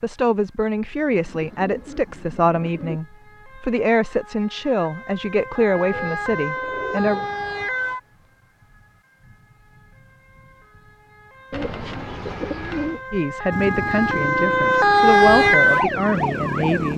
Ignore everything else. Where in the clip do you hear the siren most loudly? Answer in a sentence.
The volume of the siren peaks at 15 seconds.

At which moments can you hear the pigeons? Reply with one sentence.
You can hear the pigeons from 1.1 to 3.0 s, from 5.8 to 7.5 s and from 11.5 to 13.0 s.